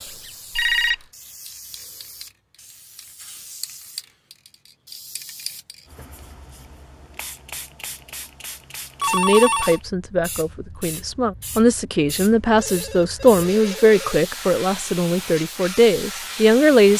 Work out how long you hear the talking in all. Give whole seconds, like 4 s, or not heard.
8 s.